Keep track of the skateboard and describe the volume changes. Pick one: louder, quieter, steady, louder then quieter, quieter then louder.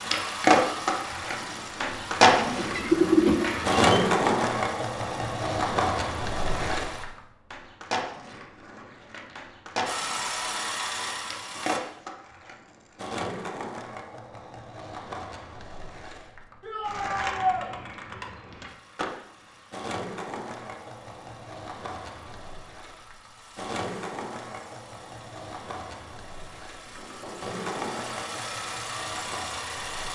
quieter.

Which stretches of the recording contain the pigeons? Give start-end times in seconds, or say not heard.
2.4-4.0.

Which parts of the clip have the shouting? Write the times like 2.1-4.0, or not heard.
16.6-17.7.